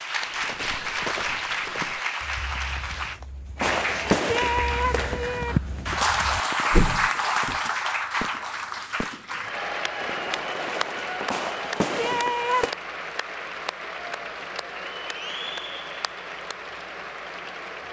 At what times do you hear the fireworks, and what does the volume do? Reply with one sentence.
You can hear the fireworks from 3.6 to 12.7 s, getting quieter then louder.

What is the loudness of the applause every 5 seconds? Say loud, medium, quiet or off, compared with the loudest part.
loud, loud, medium, medium.